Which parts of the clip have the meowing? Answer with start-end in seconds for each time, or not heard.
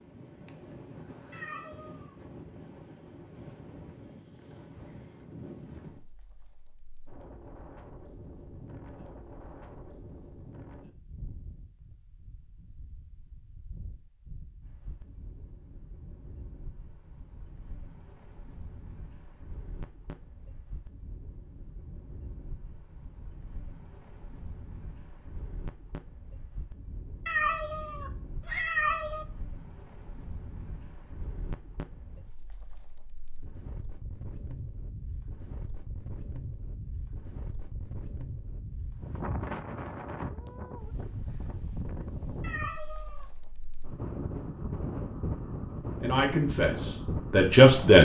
1.3-2.1, 27.2-29.2, 42.4-43.2.